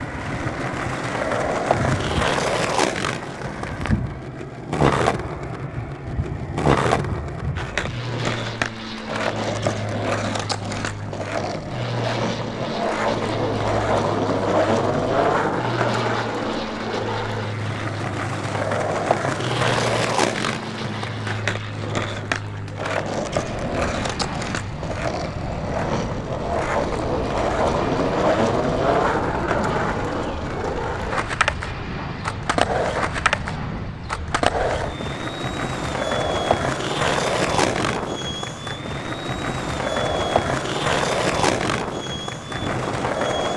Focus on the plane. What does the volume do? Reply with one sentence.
The volume of the plane stays about the same.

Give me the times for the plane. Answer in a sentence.
You can hear the plane from 0.0 to 43.5 s.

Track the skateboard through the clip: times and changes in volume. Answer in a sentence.
You can hear the skateboard from 0.0 to 43.5 s, at a steady volume.